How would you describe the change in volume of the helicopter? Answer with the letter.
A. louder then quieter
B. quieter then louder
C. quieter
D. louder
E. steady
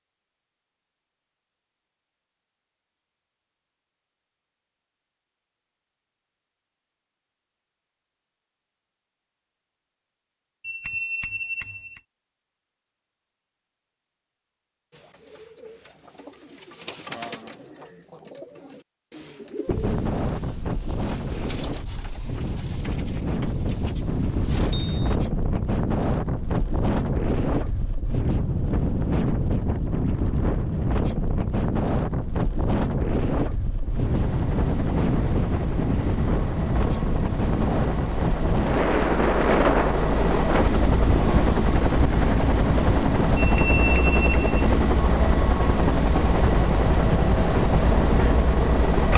D.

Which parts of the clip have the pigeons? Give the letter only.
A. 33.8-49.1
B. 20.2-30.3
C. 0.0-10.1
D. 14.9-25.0
D.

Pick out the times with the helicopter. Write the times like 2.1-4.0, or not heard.
33.8-49.1.